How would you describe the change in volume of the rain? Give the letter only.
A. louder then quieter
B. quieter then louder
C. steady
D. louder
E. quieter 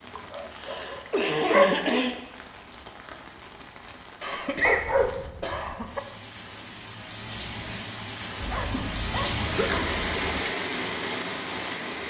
D.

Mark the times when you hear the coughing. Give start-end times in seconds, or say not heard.
0.1-2.1, 4.2-5.8, 8.6-9.8.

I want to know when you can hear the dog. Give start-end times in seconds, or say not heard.
0.1-2.0, 4.6-6.0, 8.4-10.4.